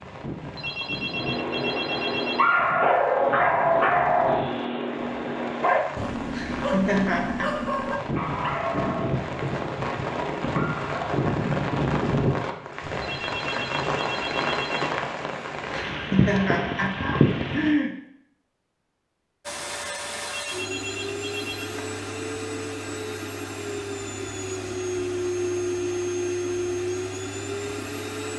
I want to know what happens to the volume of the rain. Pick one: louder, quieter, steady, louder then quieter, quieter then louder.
louder.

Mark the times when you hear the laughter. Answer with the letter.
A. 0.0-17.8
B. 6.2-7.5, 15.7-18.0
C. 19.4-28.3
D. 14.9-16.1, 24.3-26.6
B.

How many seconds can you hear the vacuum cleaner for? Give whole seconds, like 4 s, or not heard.
9 s.